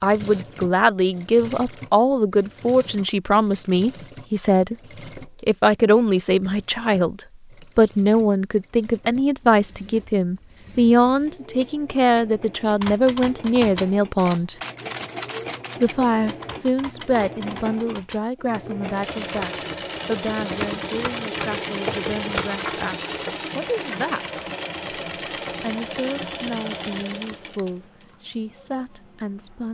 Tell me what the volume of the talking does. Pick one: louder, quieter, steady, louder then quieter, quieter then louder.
quieter.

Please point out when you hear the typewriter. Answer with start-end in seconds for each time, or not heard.
12.8-22.5.